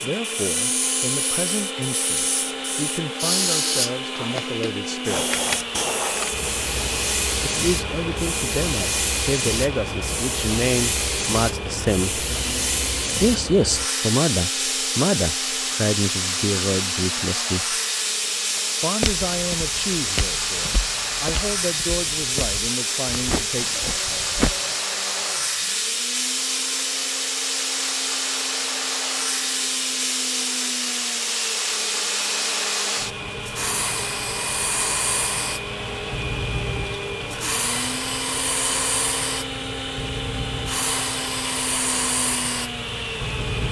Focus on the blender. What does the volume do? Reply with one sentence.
The loudness of the blender goes down, then up.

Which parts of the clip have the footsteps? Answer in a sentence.
You can hear the footsteps from 18.6 to 24.8 s.